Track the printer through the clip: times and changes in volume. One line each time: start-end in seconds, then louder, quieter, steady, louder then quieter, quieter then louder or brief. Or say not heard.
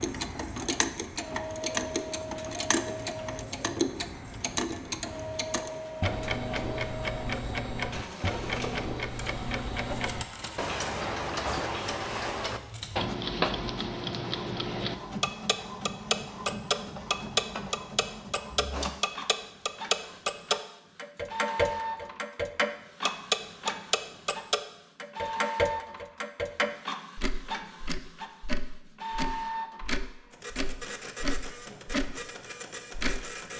0.0-33.5 steady.